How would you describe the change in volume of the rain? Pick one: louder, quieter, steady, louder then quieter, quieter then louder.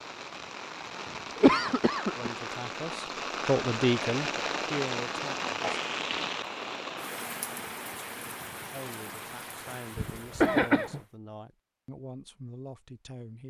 louder then quieter.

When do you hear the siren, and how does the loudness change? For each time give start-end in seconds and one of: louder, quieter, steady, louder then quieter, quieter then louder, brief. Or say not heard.
not heard.